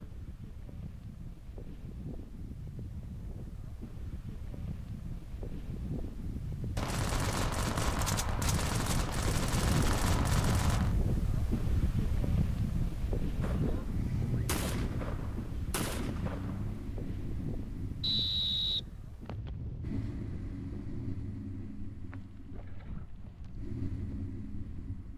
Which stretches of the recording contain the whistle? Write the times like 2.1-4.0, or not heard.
18.0-19.5.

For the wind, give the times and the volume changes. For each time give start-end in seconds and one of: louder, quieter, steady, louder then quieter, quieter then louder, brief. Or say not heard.
0.0-25.1 louder then quieter.